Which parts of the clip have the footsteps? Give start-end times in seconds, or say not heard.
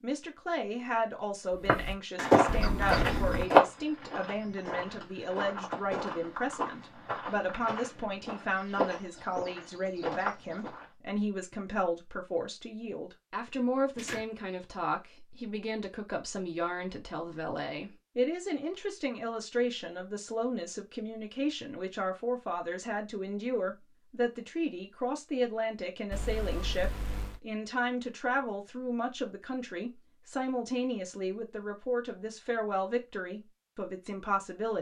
1.6-10.8.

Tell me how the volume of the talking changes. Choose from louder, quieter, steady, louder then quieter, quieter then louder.
steady.